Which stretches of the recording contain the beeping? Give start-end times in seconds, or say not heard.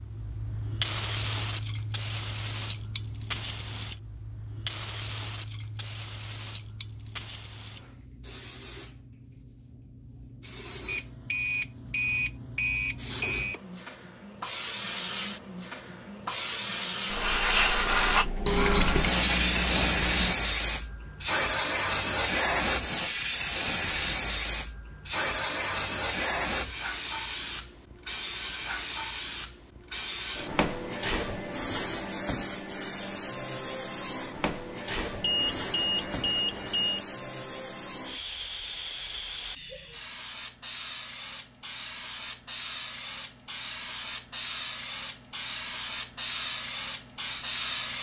10.8-13.6, 18.4-20.4, 35.2-37.0.